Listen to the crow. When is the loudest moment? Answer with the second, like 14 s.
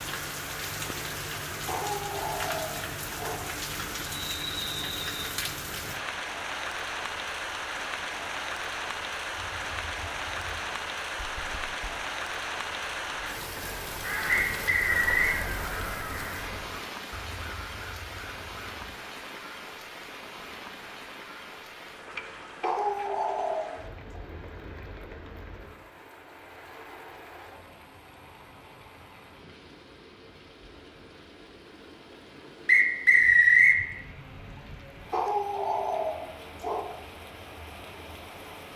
14 s.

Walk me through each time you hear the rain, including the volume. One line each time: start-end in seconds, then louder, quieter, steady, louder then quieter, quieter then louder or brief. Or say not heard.
0.0-38.7 quieter.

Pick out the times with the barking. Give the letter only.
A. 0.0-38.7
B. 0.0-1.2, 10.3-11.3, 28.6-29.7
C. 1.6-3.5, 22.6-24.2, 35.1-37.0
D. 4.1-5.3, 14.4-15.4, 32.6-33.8
C.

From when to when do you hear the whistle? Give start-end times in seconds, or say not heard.
4.1-5.3, 14.4-15.4, 32.6-33.8.